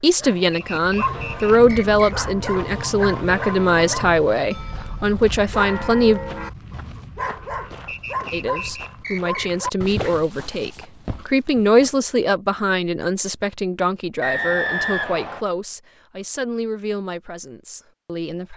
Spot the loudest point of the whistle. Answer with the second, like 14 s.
15 s.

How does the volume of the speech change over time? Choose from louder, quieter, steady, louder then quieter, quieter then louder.
quieter.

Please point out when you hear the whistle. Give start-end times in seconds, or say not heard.
0.5-2.1, 7.8-9.5, 14.2-15.4.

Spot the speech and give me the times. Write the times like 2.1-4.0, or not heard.
0.0-6.2, 8.3-18.5.